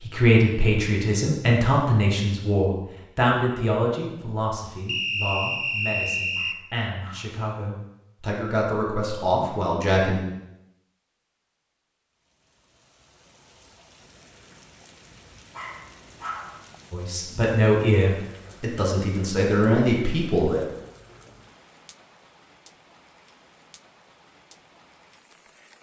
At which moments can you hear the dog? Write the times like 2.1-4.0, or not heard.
6.3-7.4, 15.5-16.6.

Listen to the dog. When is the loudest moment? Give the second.
16 s.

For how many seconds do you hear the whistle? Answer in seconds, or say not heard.
2 s.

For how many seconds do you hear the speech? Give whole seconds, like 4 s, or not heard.
14 s.